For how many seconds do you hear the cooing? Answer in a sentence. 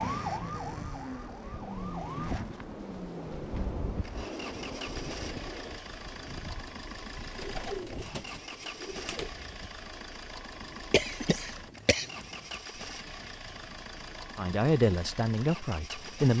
You can hear the cooing for 2 seconds altogether.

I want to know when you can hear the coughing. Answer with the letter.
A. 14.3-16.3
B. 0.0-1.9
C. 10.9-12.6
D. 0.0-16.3
C.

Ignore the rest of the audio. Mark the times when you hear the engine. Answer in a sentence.
The engine can be heard from 0.0 to 16.3 s.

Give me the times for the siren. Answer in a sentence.
The siren can be heard from 0.0 to 2.5 s.